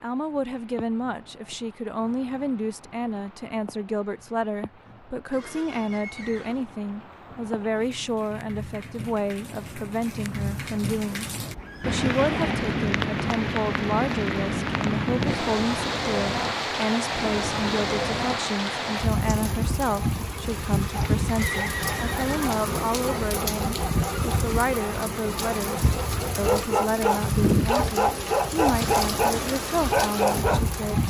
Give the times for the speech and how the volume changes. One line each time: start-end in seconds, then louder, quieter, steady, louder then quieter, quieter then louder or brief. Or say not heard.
0.0-31.0 steady.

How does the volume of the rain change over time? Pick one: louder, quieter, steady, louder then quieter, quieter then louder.
louder.